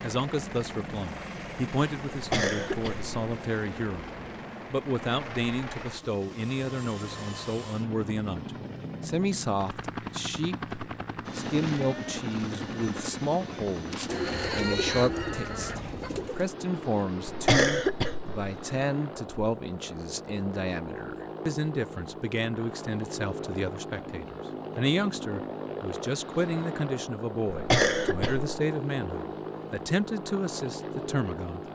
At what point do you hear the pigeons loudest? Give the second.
15 s.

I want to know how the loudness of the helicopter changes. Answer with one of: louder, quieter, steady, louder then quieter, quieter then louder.
steady.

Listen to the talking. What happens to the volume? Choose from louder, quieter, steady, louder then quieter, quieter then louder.
steady.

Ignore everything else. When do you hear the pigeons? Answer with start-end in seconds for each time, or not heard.
14.1-16.4.